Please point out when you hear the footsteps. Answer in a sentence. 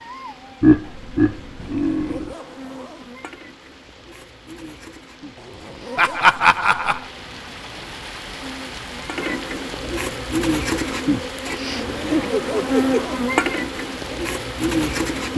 You can't hear the footsteps here.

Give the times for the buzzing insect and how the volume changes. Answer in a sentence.
The buzzing insect can be heard from 0.0 to 15.3 s, getting louder.